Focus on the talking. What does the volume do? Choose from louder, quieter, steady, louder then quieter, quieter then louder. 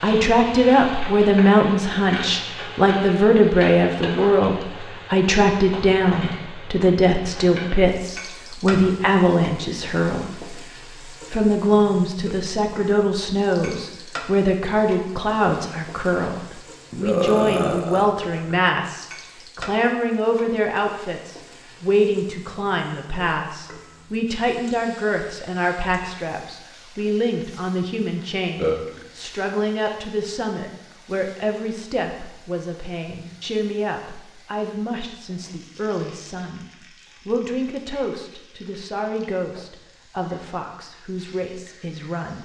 quieter.